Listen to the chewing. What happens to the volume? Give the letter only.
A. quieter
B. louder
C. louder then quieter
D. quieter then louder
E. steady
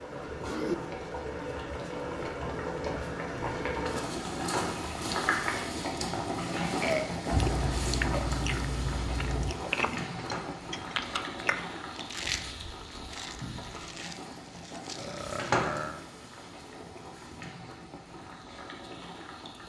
A.